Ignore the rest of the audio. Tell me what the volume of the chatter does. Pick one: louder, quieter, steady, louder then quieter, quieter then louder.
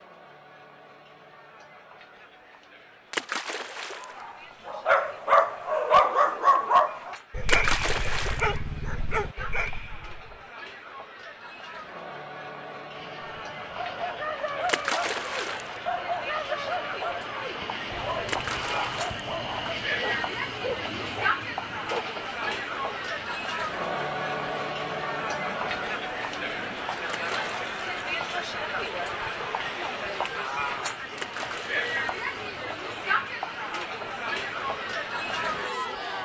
louder.